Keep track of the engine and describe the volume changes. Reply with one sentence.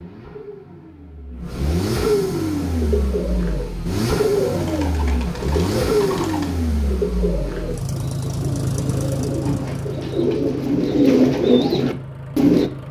The volume of the engine goes down.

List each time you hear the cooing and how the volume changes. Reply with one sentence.
The cooing can be heard from 2.6 to 12.7 s, getting louder.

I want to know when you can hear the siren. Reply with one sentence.
The siren can't be heard in this clip.